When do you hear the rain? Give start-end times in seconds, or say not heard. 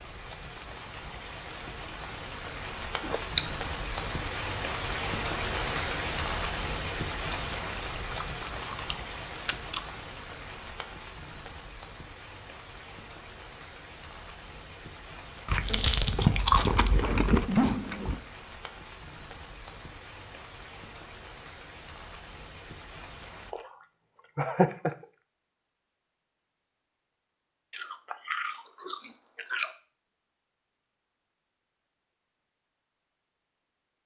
0.0-23.6.